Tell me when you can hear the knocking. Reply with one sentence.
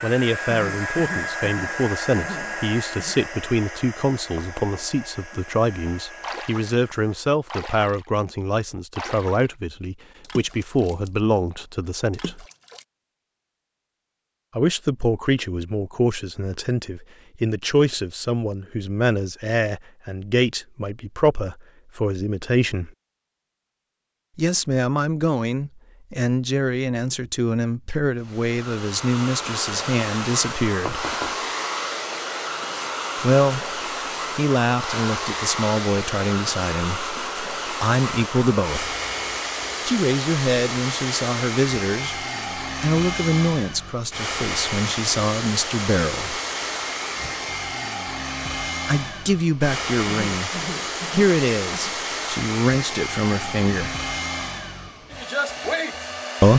The knocking can be heard from 4.3 to 5.0 s and from 30.9 to 31.4 s.